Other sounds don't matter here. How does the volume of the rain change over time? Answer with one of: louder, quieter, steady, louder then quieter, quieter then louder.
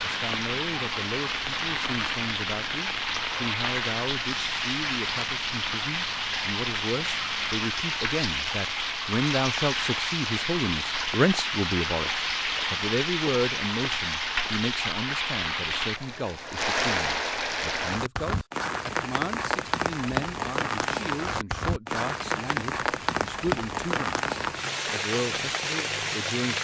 steady.